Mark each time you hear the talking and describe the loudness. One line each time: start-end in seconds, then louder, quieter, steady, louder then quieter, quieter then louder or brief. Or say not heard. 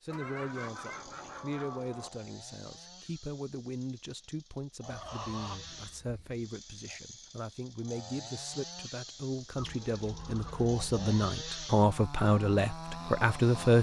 0.0-13.7 louder.